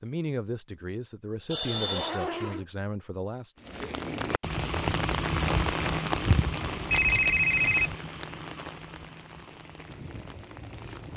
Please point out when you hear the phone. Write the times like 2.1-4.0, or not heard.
1.5-2.2, 6.9-8.0.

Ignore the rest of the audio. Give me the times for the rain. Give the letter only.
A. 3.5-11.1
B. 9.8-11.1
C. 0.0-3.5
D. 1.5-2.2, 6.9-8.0
A.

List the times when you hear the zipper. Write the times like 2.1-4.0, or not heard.
1.4-2.6.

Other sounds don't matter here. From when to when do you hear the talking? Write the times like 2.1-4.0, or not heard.
0.0-3.5.